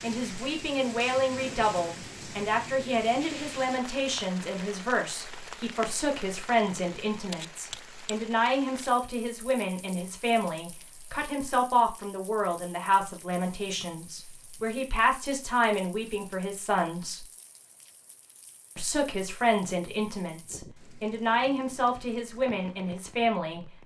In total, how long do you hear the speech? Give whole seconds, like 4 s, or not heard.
22 s.